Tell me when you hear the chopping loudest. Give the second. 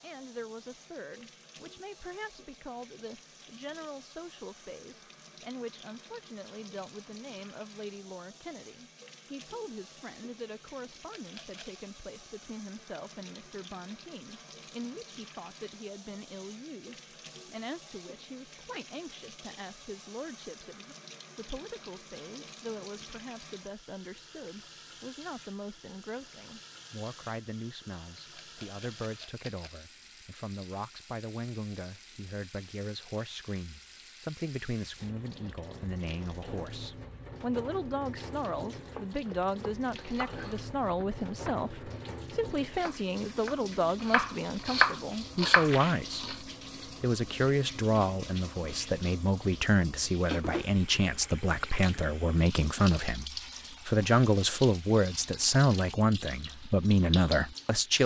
45 s.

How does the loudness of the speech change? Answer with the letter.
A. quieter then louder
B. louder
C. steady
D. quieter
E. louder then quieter
B.